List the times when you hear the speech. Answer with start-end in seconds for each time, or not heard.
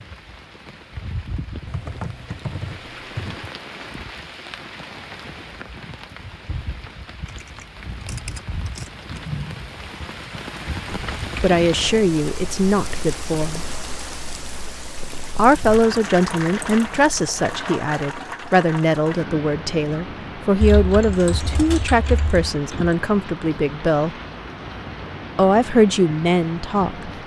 10.9-13.6, 15.2-24.1, 25.4-27.1.